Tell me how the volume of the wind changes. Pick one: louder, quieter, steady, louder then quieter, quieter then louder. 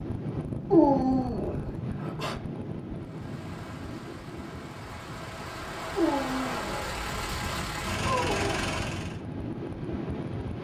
quieter then louder.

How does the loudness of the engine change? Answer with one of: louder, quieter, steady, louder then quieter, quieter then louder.
louder.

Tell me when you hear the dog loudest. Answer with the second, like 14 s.
1 s.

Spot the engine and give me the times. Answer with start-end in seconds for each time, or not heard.
3.0-9.2.